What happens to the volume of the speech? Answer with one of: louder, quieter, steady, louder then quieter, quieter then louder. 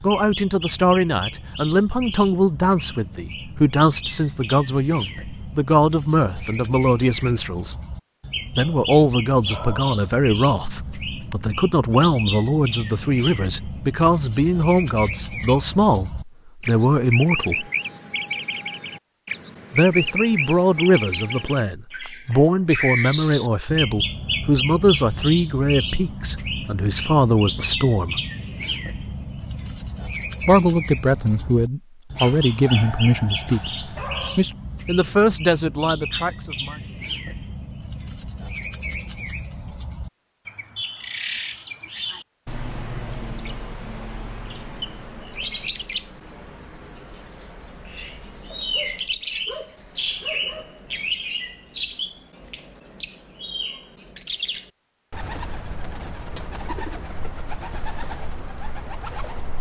steady.